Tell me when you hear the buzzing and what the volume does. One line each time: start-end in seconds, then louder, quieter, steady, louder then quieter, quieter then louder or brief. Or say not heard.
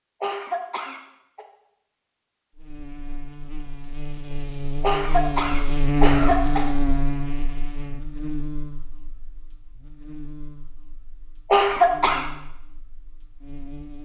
2.5-14.0 louder then quieter.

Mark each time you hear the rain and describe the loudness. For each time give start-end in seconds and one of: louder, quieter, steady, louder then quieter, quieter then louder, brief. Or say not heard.
not heard.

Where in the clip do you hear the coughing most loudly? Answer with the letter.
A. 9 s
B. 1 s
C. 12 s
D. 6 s
C.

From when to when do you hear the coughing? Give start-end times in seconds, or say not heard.
0.2-1.4, 4.8-6.7, 11.5-12.2.